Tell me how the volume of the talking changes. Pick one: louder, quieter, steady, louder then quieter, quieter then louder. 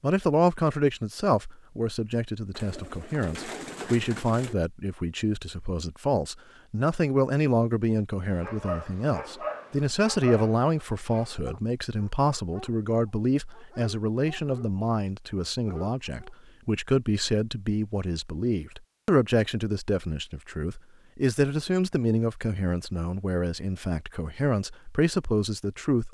steady.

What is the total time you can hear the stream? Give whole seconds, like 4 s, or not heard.
not heard.